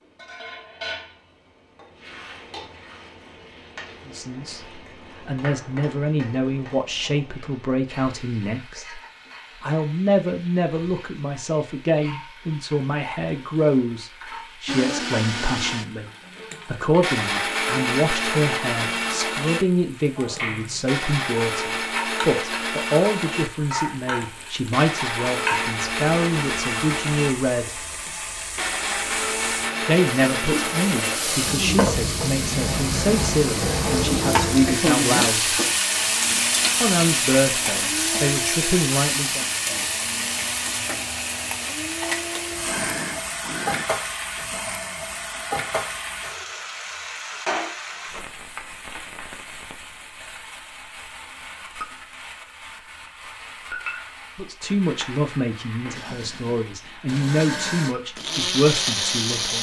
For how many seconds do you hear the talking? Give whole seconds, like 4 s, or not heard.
37 s.